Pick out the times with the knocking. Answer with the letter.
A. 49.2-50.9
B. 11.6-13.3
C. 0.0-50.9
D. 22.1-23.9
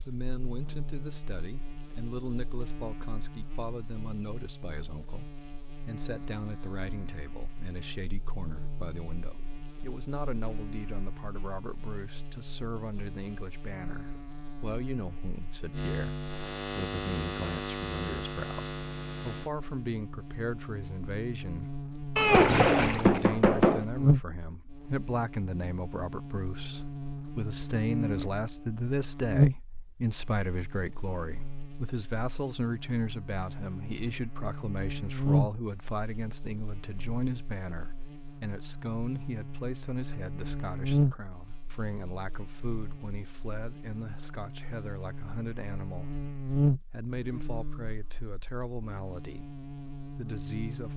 D.